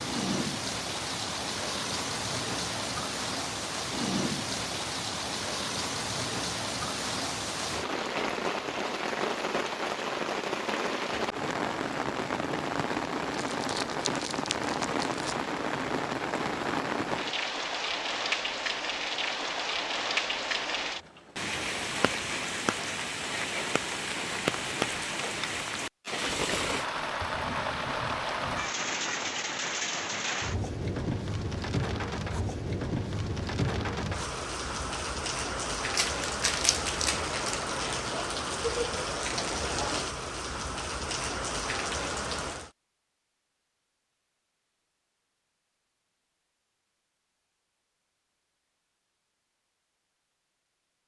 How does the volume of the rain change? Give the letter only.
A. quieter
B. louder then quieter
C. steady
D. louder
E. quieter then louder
C.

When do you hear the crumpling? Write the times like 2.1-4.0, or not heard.
13.3-15.3, 36.0-37.4.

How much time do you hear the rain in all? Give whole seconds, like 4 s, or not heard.
43 s.